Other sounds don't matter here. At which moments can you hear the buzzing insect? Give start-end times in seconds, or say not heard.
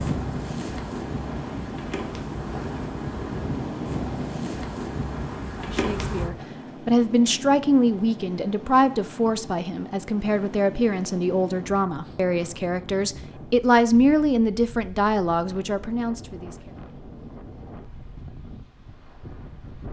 0.0-6.3.